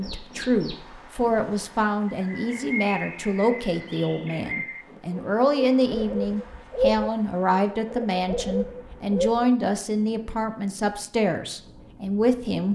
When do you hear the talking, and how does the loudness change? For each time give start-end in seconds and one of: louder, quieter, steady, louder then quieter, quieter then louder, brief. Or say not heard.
0.0-12.6 steady.